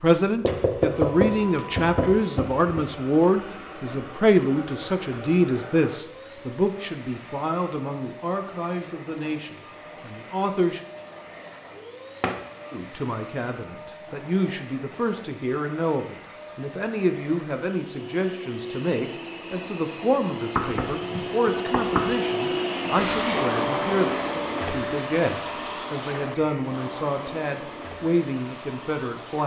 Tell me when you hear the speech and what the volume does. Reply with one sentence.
The speech can be heard from 0.0 to 10.8 s, getting quieter; and from 12.7 to 29.4 s, at a steady volume.